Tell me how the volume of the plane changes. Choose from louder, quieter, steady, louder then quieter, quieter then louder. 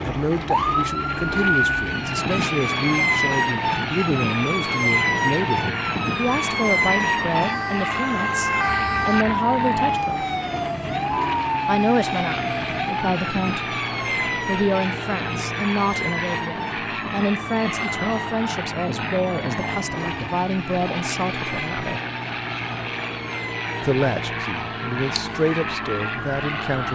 steady.